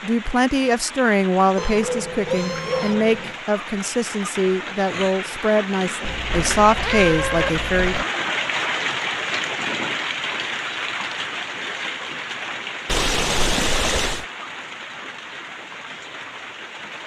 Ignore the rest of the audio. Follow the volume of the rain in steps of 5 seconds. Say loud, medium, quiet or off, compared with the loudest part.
medium, loud, loud, medium.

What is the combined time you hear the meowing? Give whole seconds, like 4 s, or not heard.
5 s.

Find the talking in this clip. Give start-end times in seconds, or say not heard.
0.0-8.1.